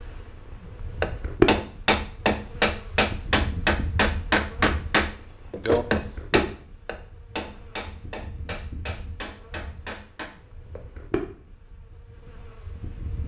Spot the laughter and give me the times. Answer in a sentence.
The laughter can't be heard in this clip.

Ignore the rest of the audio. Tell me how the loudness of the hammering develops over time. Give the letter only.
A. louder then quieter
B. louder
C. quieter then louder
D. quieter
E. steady
D.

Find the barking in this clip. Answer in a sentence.
The barking can't be heard in this clip.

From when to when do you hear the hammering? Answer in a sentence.
The hammering can be heard from 1.0 to 10.2 s.